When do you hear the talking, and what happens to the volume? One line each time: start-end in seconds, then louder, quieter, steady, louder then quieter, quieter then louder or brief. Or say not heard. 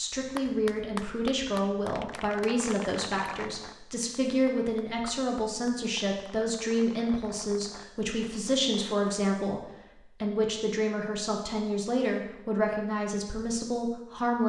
0.0-14.4 steady.